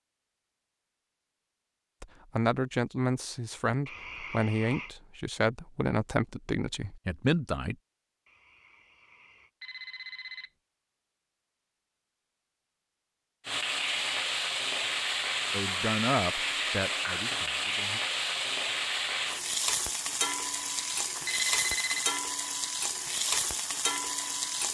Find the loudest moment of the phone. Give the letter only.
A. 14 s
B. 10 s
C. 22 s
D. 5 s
C.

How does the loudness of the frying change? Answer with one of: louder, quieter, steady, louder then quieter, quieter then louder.
steady.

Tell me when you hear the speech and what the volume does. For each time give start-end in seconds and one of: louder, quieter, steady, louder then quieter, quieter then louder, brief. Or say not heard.
2.0-7.8 steady
15.5-18.0 brief.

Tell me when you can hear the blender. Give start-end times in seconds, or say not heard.
not heard.